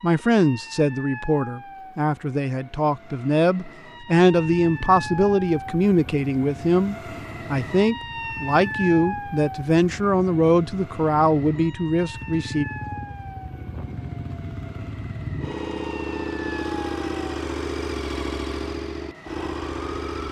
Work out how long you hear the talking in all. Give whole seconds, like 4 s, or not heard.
13 s.